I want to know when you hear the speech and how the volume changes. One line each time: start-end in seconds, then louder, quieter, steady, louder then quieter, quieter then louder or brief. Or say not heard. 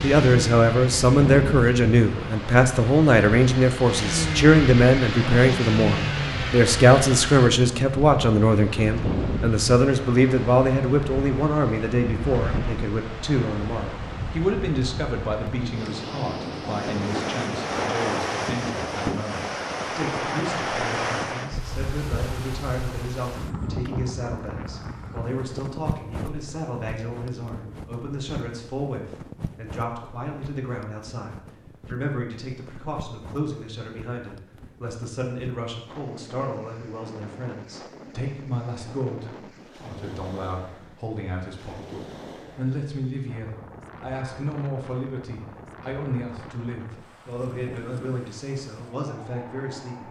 0.0-50.0 quieter.